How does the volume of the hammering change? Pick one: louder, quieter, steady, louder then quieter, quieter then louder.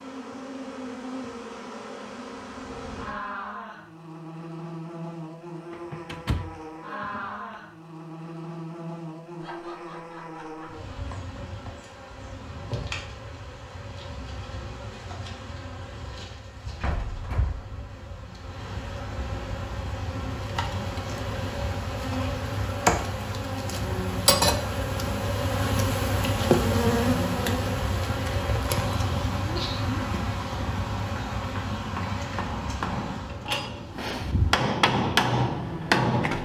louder.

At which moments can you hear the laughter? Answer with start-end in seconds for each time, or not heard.
9.4-10.8, 29.4-29.9.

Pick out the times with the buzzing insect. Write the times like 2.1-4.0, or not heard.
0.0-36.0.